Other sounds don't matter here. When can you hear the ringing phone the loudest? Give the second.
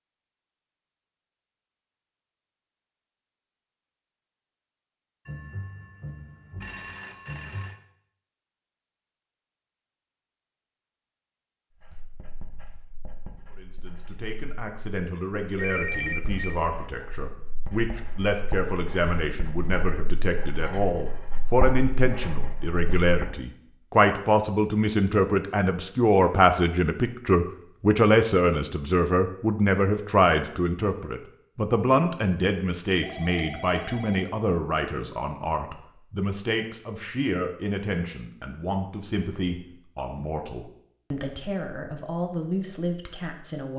16 s.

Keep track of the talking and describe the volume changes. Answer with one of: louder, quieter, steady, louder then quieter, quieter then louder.
louder then quieter.